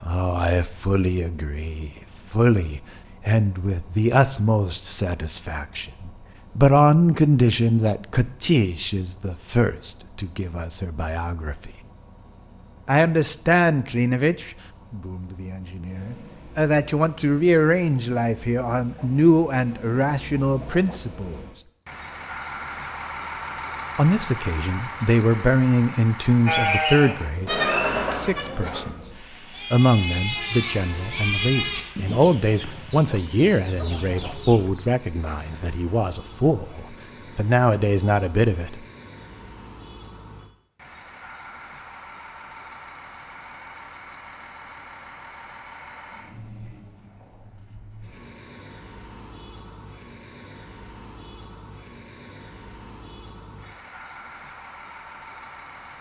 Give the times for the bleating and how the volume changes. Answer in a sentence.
You can hear the bleating from 26.4 to 32.3 s, getting quieter then louder.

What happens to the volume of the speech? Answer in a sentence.
The volume of the speech stays about the same.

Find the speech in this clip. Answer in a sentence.
You can hear the speech from 0.0 to 11.7 s, from 12.8 to 21.4 s, from 23.9 to 28.9 s and from 29.7 to 38.9 s.